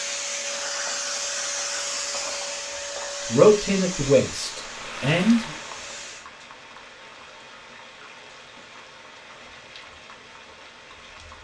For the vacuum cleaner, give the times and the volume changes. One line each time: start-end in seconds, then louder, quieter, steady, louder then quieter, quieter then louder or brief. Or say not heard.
0.0-6.2 quieter.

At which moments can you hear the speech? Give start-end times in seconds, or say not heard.
3.2-5.5.